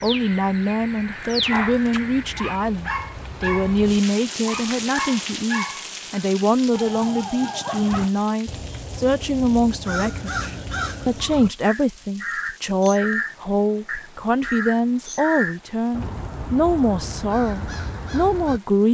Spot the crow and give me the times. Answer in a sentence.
You can hear the crow from 0.0 to 2.6 s and from 7.9 to 18.6 s.